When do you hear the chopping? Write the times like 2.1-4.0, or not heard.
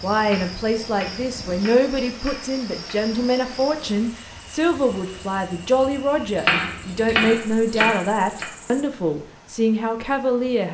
0.2-3.0, 6.3-8.4.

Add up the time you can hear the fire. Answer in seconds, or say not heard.
not heard.